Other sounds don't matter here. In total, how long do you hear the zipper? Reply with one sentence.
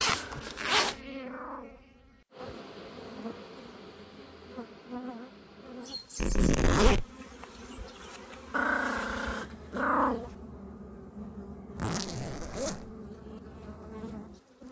You can hear the zipper for 3 seconds altogether.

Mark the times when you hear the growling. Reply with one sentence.
The growling can be heard from 0.1 to 1.9 s and from 8.5 to 10.3 s.